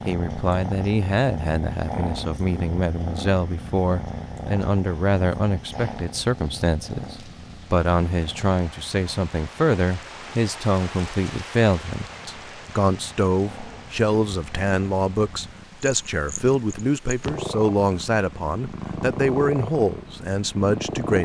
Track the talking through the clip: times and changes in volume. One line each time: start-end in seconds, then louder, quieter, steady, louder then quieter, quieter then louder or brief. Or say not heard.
0.1-21.2 steady.